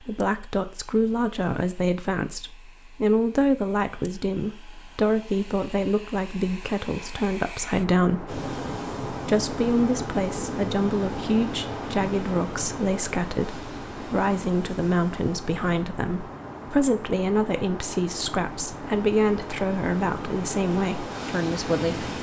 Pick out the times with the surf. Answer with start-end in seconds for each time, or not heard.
8.2-22.1.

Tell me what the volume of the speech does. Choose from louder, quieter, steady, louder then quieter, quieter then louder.
steady.